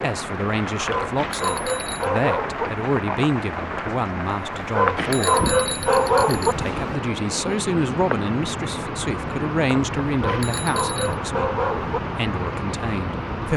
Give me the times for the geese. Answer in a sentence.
The geese can't be heard in this clip.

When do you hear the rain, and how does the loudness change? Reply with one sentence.
The rain can be heard from 0.0 to 13.5 s, at a steady volume.